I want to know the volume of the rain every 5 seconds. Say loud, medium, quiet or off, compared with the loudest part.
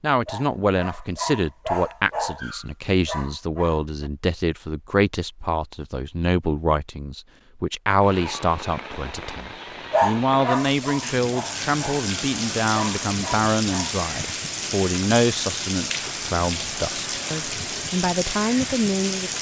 off, medium, loud, loud.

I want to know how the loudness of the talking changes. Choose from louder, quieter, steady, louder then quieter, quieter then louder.
steady.